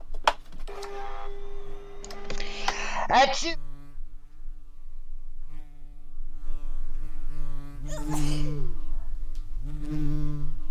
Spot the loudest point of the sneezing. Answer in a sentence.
The volume of the sneezing peaks at 3 seconds.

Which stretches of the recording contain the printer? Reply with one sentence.
You can hear the printer from 0.2 to 2.9 s.